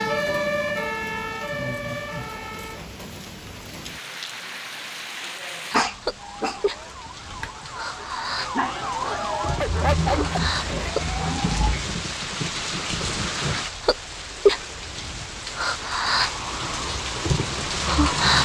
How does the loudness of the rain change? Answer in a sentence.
The volume of the rain goes up.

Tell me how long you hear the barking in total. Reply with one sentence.
You can hear the barking for 5 seconds altogether.